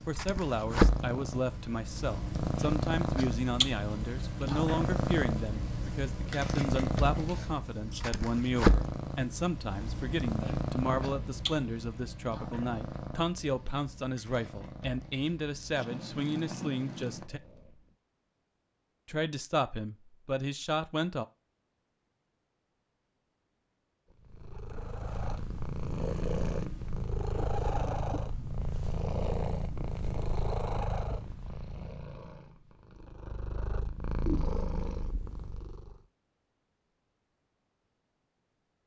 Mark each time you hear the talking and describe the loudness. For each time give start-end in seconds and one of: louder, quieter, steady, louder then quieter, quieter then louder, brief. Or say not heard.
0.1-17.4 steady
19.1-21.2 brief.